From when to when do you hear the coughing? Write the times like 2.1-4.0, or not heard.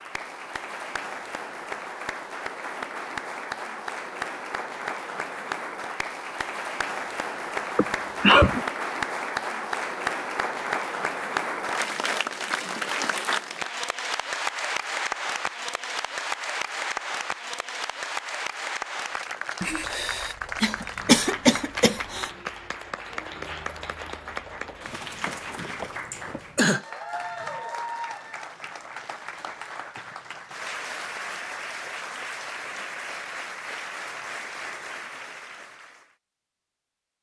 7.8-8.6, 19.6-22.3, 26.1-26.9.